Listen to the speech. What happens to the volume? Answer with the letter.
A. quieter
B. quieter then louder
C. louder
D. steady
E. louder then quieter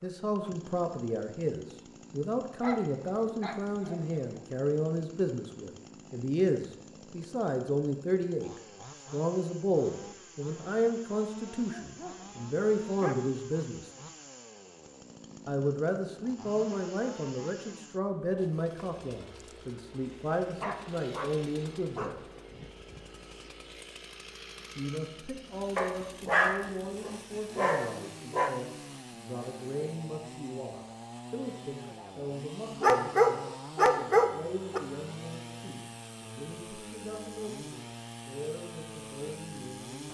A.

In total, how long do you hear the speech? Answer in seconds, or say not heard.
36 s.